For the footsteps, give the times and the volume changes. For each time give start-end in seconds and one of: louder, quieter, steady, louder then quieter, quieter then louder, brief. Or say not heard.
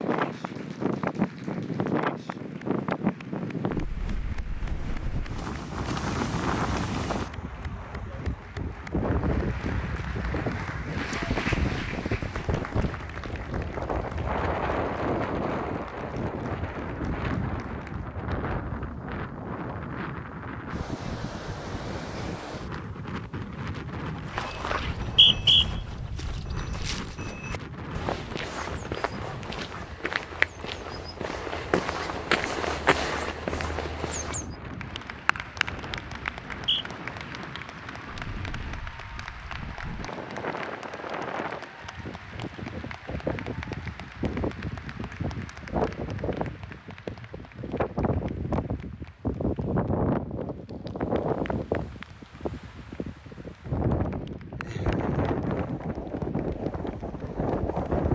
24.2-34.5 louder.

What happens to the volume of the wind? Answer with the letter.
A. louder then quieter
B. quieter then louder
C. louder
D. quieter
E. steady
B.